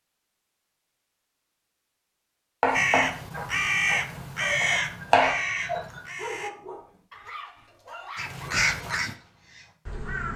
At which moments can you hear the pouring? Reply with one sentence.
The pouring can't be heard in this clip.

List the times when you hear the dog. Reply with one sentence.
You can hear the dog from 3.2 to 8.5 s.